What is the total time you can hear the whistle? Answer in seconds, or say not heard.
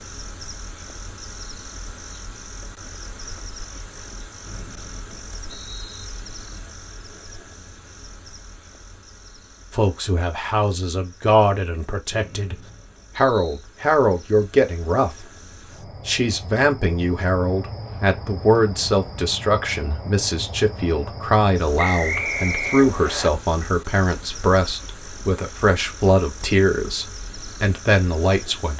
5 s.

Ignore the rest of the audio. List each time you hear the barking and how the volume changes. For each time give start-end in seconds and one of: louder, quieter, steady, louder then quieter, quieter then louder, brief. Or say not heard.
not heard.